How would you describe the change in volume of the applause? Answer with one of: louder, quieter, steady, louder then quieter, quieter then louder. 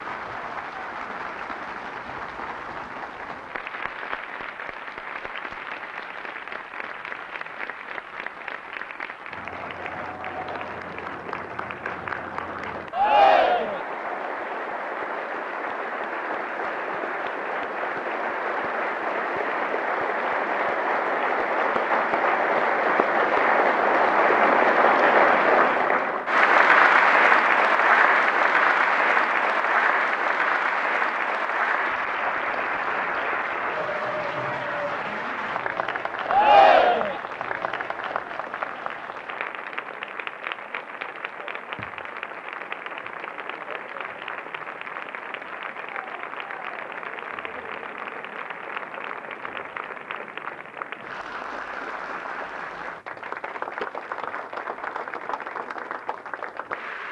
louder then quieter.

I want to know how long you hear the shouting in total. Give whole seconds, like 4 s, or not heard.
2 s.